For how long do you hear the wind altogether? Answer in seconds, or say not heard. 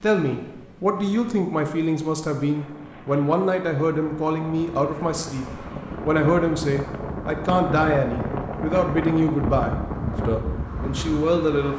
12 s.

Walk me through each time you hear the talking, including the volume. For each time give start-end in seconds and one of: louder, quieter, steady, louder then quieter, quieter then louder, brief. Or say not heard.
0.0-11.7 steady.